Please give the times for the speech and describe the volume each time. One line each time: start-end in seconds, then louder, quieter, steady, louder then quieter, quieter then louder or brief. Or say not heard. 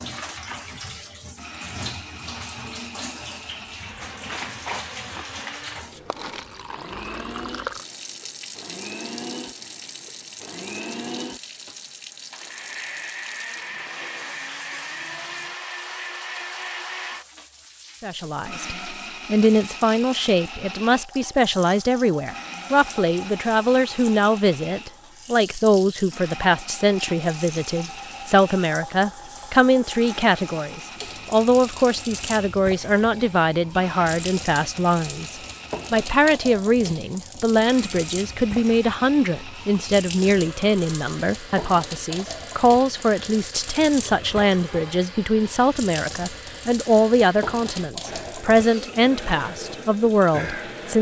18.0-50.9 steady.